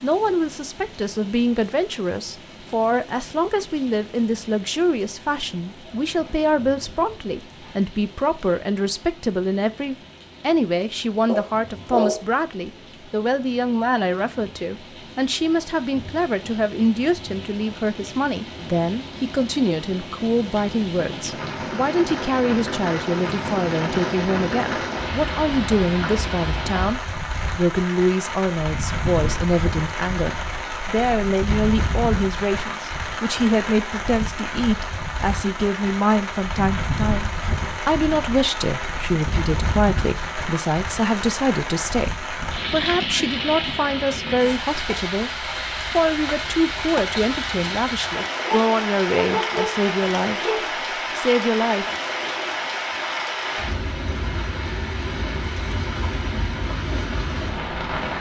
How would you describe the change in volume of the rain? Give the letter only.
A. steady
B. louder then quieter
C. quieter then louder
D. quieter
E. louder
E.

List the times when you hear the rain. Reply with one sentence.
You can hear the rain from 0.0 to 58.1 s.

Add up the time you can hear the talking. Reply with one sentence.
You can hear the talking for 51 seconds altogether.